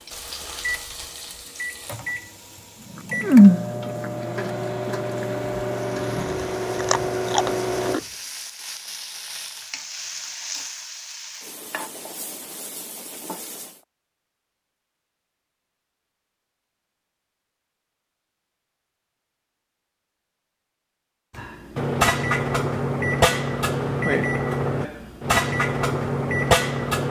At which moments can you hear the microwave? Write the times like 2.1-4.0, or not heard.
0.1-8.0, 21.4-27.0.